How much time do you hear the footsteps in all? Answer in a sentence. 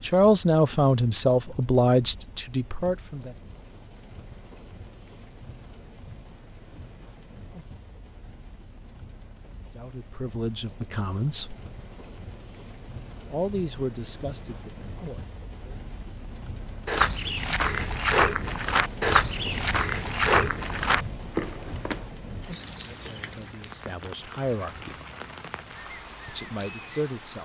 You can hear the footsteps for 5 seconds altogether.